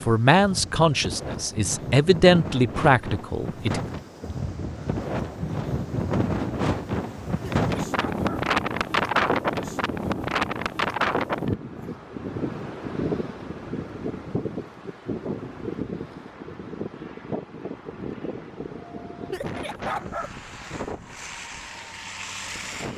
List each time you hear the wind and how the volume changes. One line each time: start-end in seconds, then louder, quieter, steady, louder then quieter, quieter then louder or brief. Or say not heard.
0.0-22.9 louder then quieter.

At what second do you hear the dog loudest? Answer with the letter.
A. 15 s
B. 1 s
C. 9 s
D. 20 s
D.